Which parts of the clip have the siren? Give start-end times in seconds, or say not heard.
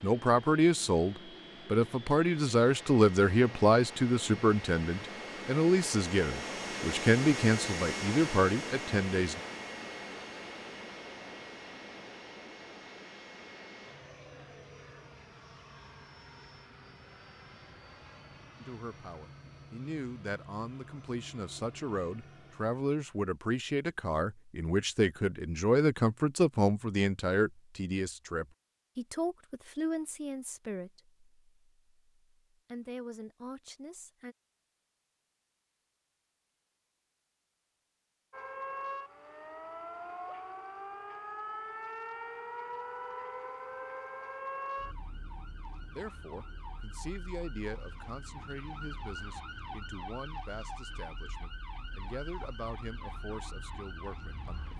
38.3-54.7.